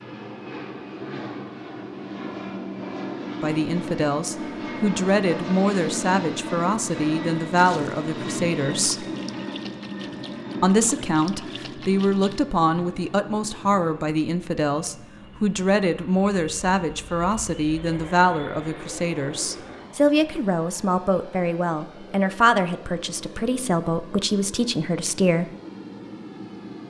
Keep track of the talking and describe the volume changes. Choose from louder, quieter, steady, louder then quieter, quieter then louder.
steady.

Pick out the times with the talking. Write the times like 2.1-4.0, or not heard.
3.4-9.1, 10.6-25.5.